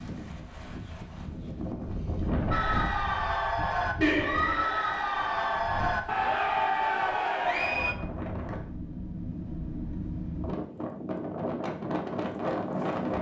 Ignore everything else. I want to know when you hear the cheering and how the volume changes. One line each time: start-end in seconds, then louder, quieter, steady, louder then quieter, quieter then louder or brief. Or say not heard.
2.5-8.0 steady.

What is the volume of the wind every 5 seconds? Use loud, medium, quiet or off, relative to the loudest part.
medium, medium, loud.